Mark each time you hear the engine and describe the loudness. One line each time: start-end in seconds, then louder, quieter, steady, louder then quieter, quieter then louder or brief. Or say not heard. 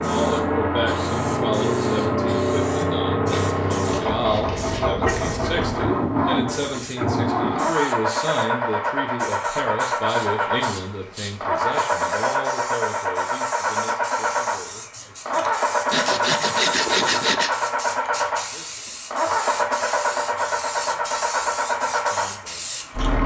0.0-23.2 steady.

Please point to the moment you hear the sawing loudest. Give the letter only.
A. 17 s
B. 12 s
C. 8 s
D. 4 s
A.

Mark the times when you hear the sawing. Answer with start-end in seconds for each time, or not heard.
3.3-5.0, 15.9-17.5.